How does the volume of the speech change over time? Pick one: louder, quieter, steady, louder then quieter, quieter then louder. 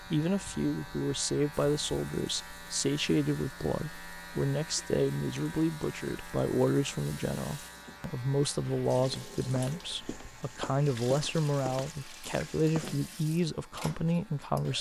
steady.